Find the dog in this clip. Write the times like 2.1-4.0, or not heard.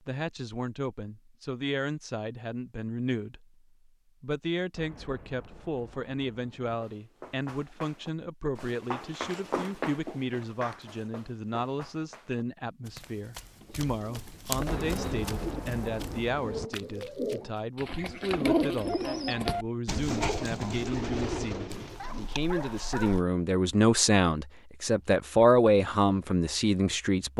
21.7-23.2.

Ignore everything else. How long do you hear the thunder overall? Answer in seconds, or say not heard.
4 s.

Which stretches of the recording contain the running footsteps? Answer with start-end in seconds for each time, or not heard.
6.7-17.6.